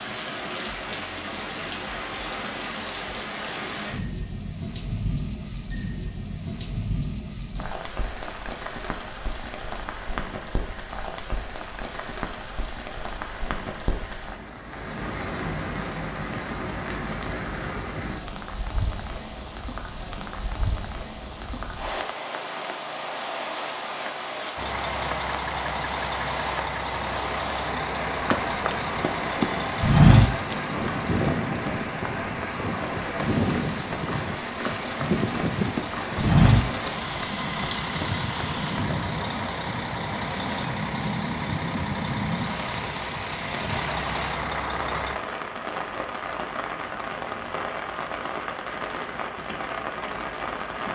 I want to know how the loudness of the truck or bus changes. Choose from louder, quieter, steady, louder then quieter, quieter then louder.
steady.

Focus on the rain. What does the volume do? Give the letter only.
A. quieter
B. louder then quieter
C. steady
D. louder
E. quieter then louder
C.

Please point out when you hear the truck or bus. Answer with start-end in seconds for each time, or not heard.
24.6-45.2.